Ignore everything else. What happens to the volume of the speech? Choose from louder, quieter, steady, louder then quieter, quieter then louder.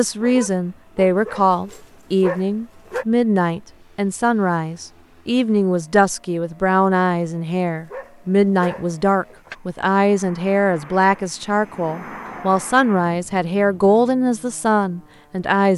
steady.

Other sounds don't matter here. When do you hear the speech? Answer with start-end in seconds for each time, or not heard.
0.0-15.7.